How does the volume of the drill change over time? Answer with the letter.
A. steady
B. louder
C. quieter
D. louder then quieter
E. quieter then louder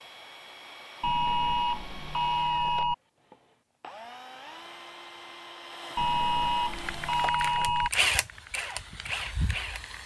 B.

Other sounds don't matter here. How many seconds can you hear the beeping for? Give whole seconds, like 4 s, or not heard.
4 s.